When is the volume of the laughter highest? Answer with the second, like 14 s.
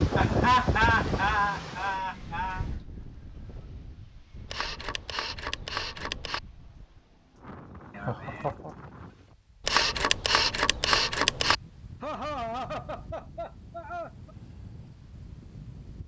1 s.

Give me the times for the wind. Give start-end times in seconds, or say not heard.
0.0-16.0.